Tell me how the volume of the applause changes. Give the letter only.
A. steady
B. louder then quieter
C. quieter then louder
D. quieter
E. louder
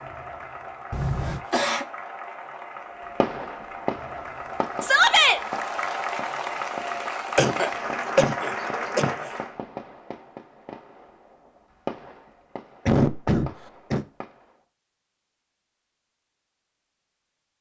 E.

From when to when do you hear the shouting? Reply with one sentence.
The shouting can be heard from 4.8 to 5.4 s.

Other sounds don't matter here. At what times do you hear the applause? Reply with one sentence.
You can hear the applause from 0.0 to 9.6 s.